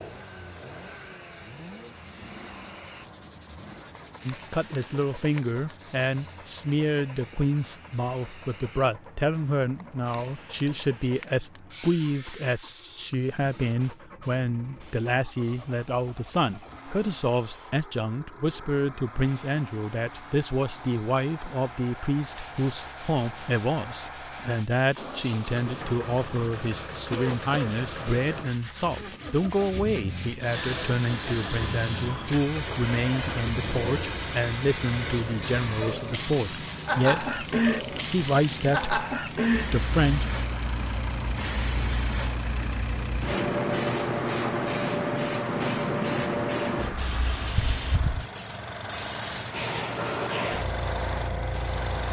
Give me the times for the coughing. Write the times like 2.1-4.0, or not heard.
27.1-27.8.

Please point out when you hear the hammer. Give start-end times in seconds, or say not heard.
not heard.